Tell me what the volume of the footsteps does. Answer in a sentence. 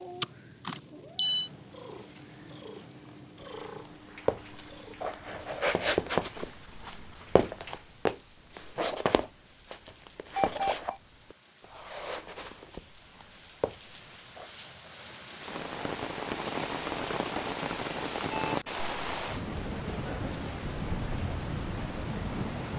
The volume of the footsteps goes down.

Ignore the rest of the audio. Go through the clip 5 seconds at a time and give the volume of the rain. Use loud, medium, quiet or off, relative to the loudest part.
quiet, quiet, quiet, loud, loud.